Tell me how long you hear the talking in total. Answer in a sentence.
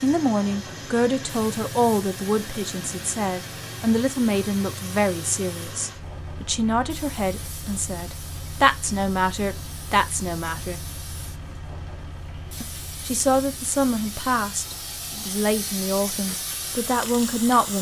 The talking can be heard for 16 seconds in total.